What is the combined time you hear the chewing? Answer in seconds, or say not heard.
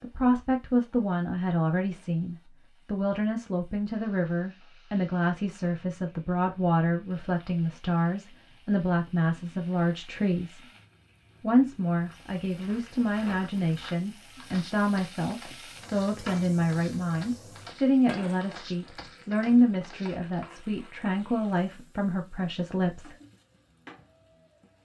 not heard.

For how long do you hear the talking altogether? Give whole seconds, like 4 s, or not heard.
22 s.